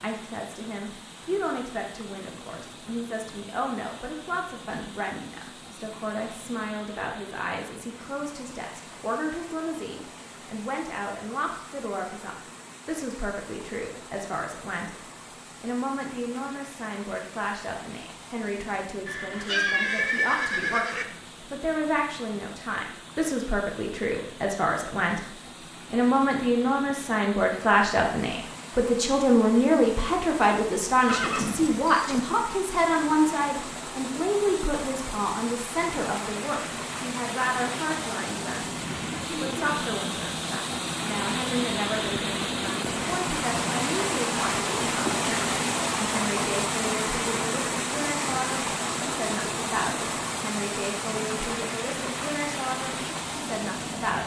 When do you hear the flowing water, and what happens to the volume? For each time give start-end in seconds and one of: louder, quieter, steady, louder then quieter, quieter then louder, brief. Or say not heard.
0.0-54.2 louder.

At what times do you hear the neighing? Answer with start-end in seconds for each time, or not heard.
19.1-21.1, 31.1-32.2.